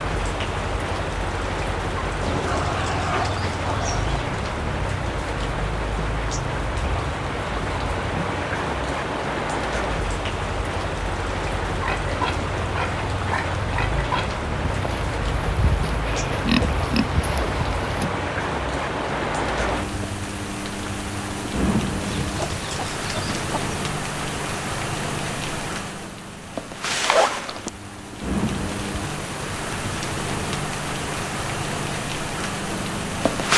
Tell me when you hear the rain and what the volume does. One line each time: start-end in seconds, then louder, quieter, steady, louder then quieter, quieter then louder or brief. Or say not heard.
0.0-33.5 steady.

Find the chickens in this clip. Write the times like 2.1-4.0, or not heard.
2.2-4.2, 22.1-23.6.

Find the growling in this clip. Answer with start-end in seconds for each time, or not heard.
2.2-4.1.